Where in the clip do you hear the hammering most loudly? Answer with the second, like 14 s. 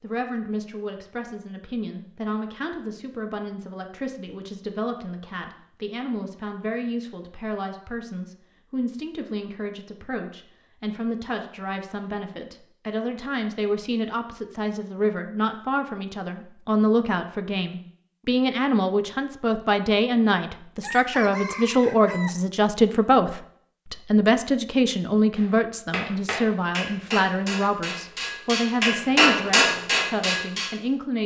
29 s.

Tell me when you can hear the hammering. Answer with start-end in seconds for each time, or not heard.
25.4-30.8.